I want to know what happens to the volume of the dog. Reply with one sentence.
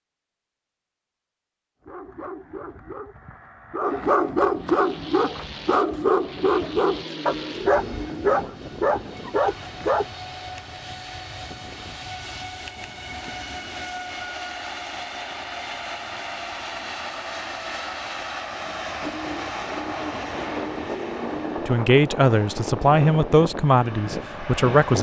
The volume of the dog goes up.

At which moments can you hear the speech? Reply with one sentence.
The speech can be heard from 21.6 to 24.9 s.